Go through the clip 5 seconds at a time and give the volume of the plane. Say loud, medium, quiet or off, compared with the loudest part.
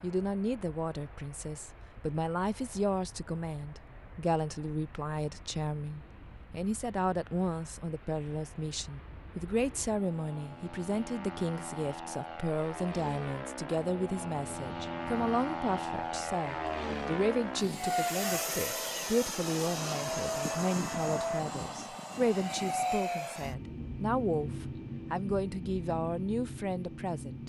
quiet, quiet, medium, loud, loud, medium.